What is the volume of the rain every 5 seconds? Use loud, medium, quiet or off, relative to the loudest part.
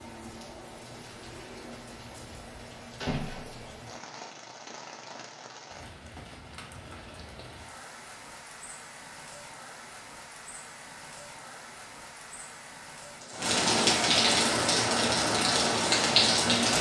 quiet, quiet, medium, loud.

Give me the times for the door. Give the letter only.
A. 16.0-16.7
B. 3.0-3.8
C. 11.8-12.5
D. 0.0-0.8
B.